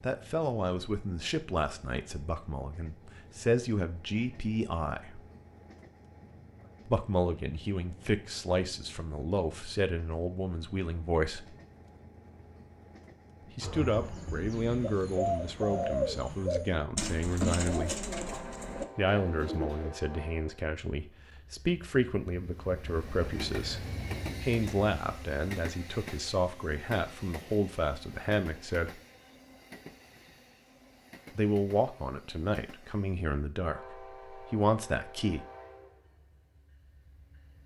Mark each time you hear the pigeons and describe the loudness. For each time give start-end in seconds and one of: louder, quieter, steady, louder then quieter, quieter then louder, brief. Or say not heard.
13.6-19.9 louder then quieter.